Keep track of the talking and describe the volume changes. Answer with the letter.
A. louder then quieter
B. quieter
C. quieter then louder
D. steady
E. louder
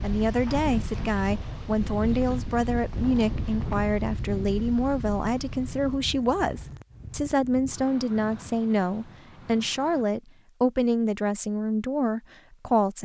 D.